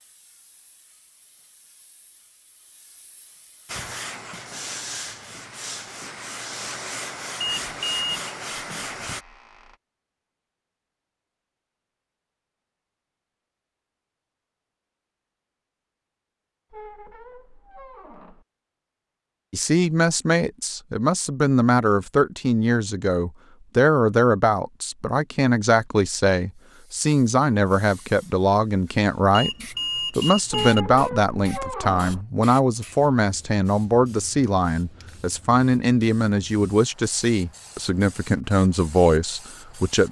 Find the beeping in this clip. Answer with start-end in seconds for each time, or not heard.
7.4-8.1, 29.3-30.9.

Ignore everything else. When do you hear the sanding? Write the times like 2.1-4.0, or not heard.
3.6-9.2.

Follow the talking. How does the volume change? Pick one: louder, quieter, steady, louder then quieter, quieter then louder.
steady.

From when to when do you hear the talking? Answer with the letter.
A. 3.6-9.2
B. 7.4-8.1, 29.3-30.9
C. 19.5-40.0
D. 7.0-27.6
C.